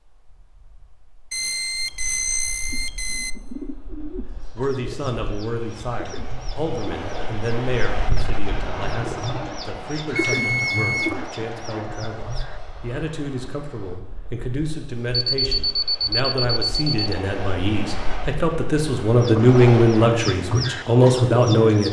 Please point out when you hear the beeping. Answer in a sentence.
The beeping can be heard from 1.3 to 3.3 s, from 10.2 to 11.2 s and from 15.1 to 17.1 s.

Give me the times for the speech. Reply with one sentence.
The speech can be heard from 4.5 to 21.8 s.